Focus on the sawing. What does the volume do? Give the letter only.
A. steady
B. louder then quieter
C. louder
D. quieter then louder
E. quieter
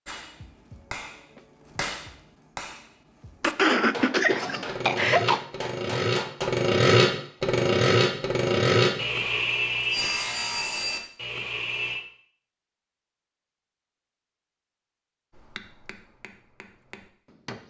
B.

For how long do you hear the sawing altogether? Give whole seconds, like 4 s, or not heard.
8 s.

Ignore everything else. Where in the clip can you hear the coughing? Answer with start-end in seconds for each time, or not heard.
3.4-5.4.